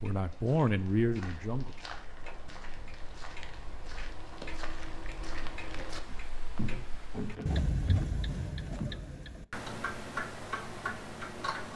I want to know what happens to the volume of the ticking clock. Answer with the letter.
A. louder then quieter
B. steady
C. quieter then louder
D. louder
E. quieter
D.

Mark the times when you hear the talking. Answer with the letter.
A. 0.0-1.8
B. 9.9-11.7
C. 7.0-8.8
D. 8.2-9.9
A.